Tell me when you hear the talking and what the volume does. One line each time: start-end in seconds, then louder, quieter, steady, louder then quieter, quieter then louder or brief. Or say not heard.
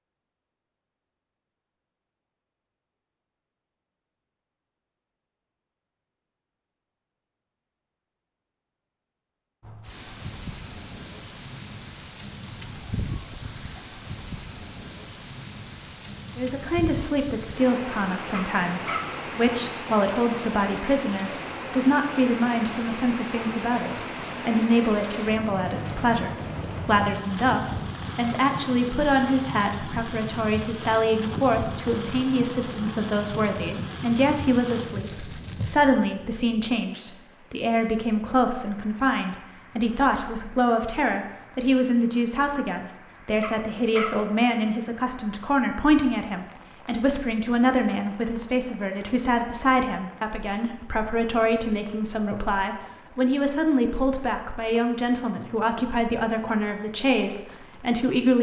16.4-58.3 steady.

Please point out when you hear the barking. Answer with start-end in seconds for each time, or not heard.
18.3-19.1, 43.4-44.1.